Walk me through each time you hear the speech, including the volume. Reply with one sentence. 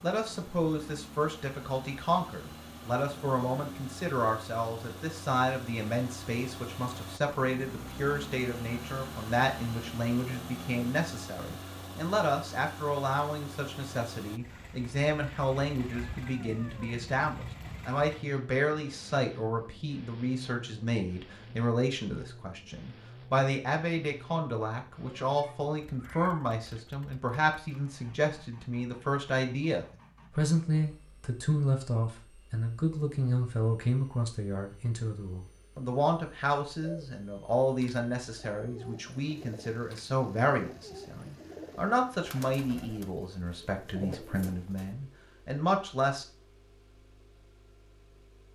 You can hear the speech from 0.0 to 46.2 s, at a steady volume.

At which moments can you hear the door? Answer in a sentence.
You can't hear the door here.